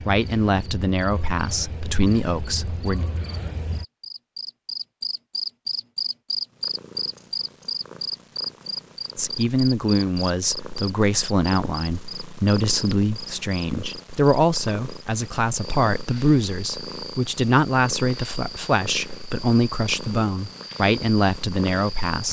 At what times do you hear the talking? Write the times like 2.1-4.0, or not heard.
0.0-3.0, 9.2-22.2.